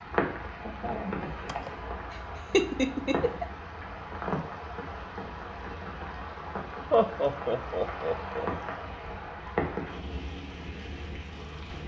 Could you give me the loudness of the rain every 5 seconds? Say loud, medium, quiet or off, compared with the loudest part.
loud, loud, medium.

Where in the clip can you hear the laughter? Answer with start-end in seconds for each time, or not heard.
1.4-3.5, 6.9-8.5.